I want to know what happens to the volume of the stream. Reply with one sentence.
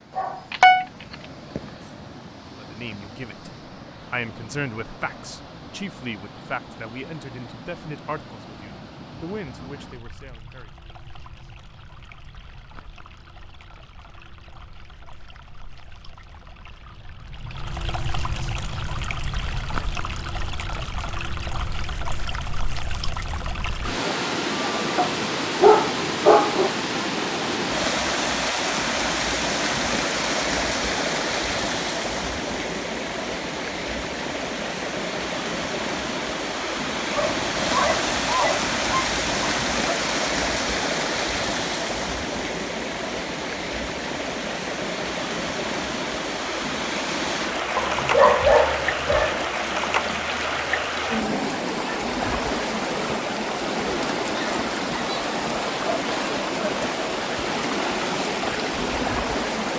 The volume of the stream goes up.